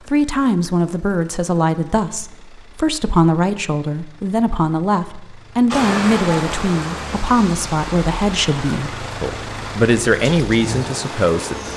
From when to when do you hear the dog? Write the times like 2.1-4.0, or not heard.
not heard.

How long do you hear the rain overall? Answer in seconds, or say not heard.
6 s.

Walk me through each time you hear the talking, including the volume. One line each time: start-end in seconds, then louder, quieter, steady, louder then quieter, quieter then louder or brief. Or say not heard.
0.1-11.7 steady.